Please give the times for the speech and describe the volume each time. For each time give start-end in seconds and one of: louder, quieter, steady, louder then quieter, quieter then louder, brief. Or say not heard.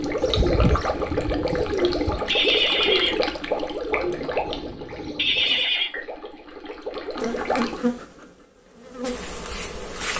not heard.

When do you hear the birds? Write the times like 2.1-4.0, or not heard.
0.0-5.7.